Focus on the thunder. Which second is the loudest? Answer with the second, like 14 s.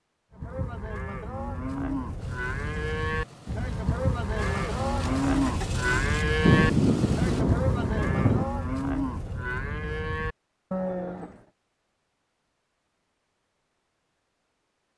7 s.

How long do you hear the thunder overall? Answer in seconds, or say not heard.
2 s.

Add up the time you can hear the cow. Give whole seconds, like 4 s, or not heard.
11 s.